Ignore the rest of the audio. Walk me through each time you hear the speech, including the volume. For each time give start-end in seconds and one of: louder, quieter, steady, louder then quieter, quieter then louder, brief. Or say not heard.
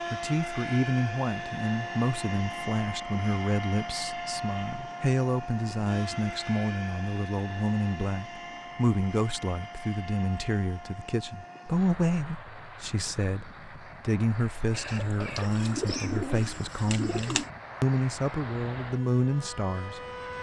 0.1-20.3 steady.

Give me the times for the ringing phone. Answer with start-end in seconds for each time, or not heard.
not heard.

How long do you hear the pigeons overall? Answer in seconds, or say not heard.
3 s.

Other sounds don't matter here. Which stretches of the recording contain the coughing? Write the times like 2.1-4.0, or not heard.
14.7-16.2.